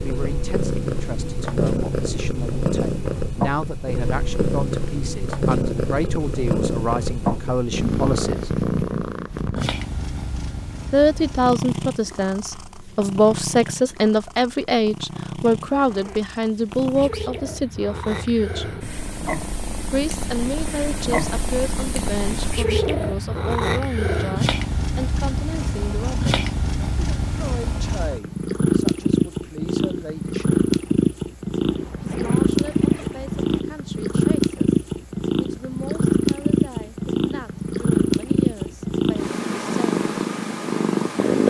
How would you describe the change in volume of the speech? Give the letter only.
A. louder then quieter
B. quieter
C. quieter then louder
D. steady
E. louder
A.